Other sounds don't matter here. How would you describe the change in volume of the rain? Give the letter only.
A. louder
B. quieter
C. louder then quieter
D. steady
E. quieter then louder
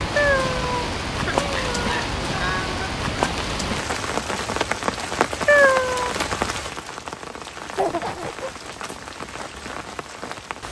B.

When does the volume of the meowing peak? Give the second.
6 s.